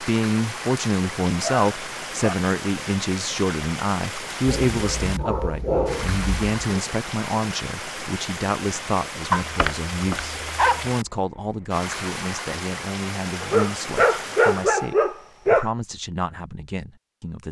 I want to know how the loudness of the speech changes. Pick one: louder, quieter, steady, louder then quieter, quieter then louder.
quieter.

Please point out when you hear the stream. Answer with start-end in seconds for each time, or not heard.
0.0-14.9.